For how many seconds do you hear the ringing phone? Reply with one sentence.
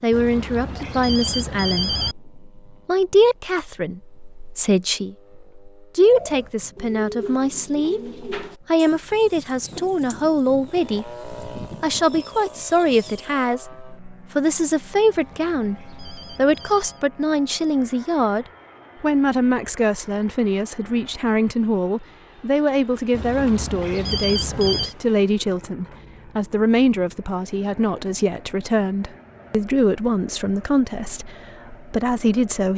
The ringing phone can be heard for 6 seconds in total.